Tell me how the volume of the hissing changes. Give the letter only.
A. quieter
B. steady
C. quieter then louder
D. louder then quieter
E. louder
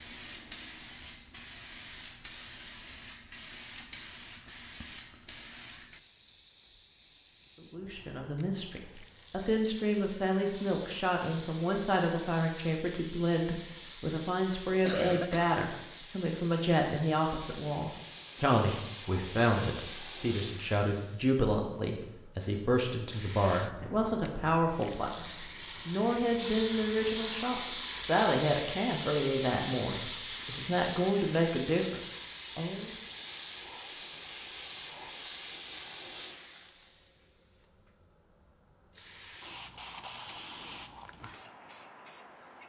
D.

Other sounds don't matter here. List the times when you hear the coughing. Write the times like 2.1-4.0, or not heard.
14.8-15.6.